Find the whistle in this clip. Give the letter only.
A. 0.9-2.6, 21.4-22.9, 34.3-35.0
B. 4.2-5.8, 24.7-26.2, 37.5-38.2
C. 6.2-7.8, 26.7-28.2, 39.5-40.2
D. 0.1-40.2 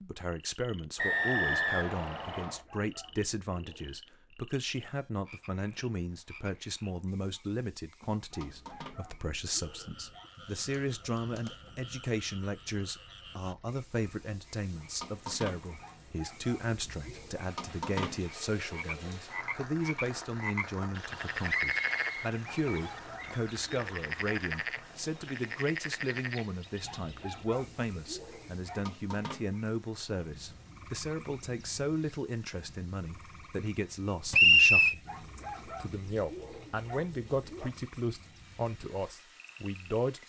A.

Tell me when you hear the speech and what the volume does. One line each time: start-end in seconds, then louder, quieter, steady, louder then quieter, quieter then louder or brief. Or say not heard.
0.1-40.2 steady.